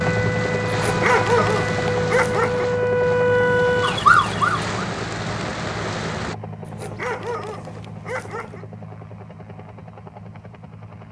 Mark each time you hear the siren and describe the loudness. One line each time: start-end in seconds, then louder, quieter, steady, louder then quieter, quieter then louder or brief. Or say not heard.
0.0-4.7 louder.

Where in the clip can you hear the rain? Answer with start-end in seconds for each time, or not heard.
0.0-6.3.